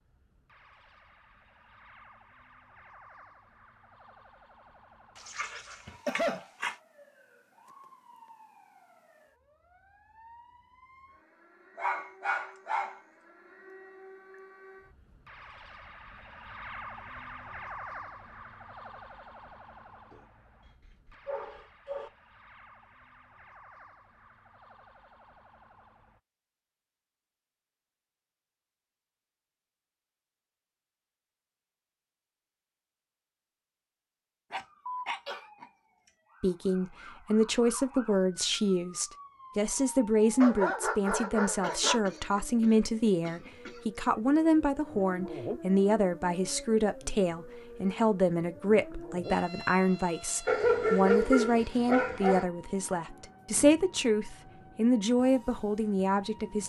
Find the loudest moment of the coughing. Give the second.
6 s.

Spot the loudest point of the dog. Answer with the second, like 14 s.
51 s.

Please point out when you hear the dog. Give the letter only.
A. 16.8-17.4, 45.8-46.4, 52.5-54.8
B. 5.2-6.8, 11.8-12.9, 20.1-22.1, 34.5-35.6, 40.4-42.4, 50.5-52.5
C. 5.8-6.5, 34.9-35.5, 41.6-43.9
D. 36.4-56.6
B.